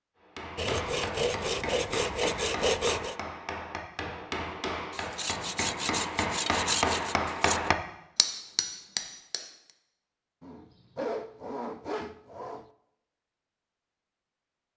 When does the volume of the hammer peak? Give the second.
7 s.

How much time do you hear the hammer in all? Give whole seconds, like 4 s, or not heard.
9 s.